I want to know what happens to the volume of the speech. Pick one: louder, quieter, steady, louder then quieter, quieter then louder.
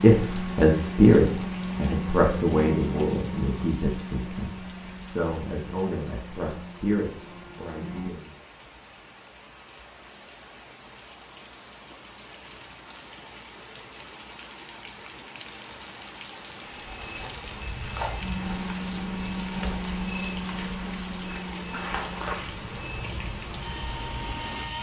quieter.